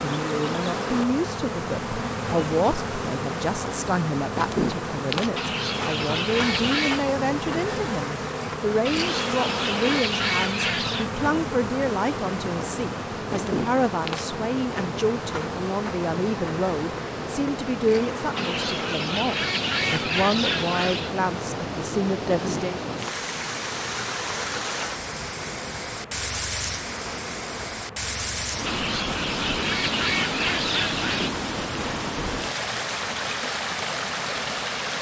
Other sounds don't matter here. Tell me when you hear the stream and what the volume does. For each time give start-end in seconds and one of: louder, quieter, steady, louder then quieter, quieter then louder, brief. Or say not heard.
12.0-34.9 louder.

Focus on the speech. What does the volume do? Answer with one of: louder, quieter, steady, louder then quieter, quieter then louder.
steady.